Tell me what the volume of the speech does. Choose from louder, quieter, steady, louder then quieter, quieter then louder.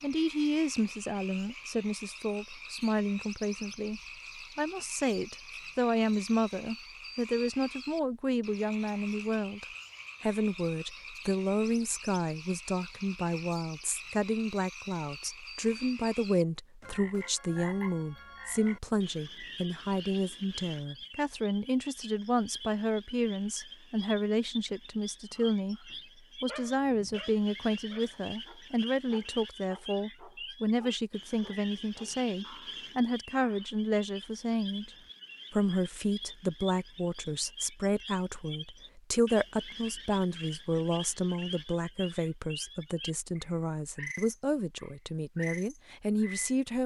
steady.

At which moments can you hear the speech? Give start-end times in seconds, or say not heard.
0.0-34.9, 35.5-46.8.